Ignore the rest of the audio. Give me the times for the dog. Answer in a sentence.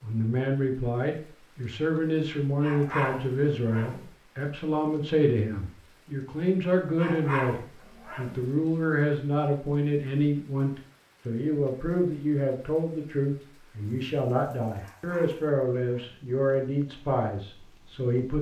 You can hear the dog from 2.4 to 4.0 s, from 7.0 to 8.4 s and from 14.8 to 16.2 s.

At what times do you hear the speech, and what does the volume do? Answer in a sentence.
The speech can be heard from 0.0 to 18.3 s, at a steady volume.